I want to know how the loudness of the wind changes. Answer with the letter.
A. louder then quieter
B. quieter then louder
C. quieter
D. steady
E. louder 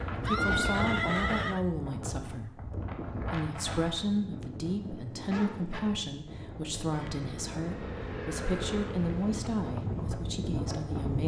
B.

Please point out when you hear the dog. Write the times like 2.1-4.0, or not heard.
5.3-5.8.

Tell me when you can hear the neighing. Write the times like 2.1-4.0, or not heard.
0.1-1.6, 6.9-8.9.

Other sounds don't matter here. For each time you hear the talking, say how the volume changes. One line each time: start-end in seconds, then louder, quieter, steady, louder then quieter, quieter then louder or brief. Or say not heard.
0.2-11.2 steady.